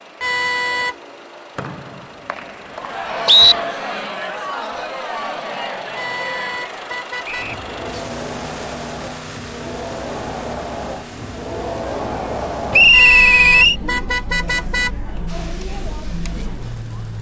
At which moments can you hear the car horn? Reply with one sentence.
The car horn can be heard from 0.2 to 0.9 s, from 6.0 to 7.5 s and from 12.9 to 14.9 s.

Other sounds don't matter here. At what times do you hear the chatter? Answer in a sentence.
You can hear the chatter from 2.6 to 17.1 s.